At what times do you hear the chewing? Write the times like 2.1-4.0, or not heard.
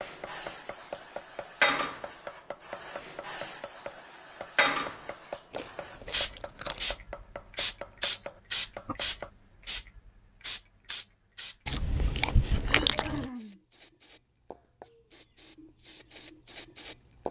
5.5-7.0, 11.7-13.3.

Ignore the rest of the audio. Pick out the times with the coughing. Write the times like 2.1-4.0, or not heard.
12.6-13.6.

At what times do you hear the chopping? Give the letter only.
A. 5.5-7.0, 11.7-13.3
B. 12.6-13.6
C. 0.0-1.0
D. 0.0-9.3
D.